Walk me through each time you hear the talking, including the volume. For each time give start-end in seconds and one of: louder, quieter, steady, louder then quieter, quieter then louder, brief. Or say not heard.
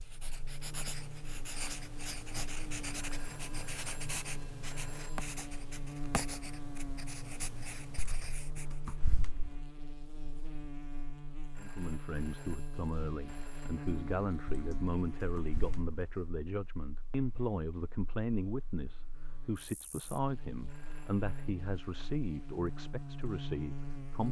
11.6-24.2 steady.